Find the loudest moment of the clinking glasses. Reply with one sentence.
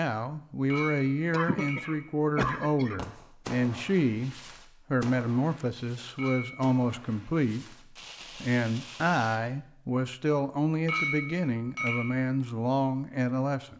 The loudest moment of the clinking glasses is at 11 seconds.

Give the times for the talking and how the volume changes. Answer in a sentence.
The talking can be heard from 0.0 to 13.7 s, at a steady volume.